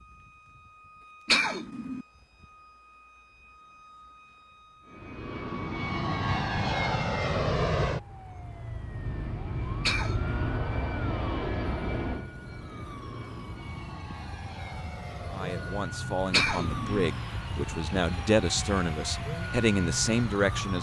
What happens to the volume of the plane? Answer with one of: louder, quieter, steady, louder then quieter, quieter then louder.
quieter.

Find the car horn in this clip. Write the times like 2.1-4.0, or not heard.
not heard.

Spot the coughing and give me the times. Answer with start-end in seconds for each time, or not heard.
1.2-2.0, 9.8-10.3, 16.3-17.1.